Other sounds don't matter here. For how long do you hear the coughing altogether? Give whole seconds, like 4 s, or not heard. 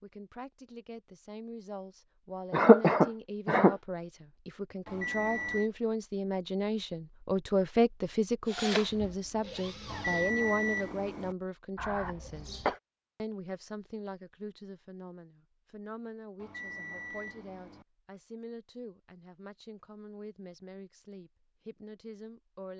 2 s.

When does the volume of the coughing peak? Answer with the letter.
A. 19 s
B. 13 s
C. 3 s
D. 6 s
C.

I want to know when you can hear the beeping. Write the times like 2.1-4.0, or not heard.
4.8-5.7, 9.8-11.3, 16.4-17.9.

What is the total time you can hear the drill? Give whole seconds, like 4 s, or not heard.
2 s.